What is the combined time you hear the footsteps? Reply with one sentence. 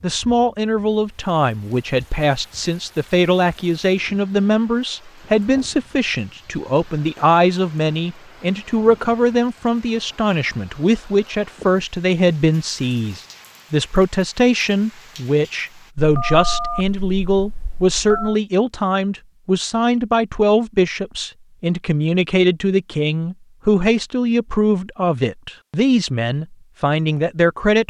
You can't hear the footsteps here.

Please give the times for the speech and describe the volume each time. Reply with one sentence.
You can hear the speech from 0.0 to 27.8 s, at a steady volume.